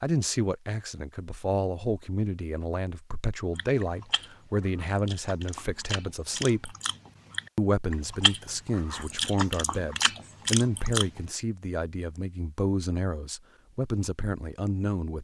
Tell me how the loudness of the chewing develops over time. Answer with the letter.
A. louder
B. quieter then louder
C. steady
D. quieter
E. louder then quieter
A.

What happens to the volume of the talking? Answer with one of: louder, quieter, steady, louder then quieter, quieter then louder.
steady.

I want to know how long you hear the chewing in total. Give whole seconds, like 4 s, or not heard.
8 s.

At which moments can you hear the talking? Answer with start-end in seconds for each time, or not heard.
0.0-6.8, 7.5-15.2.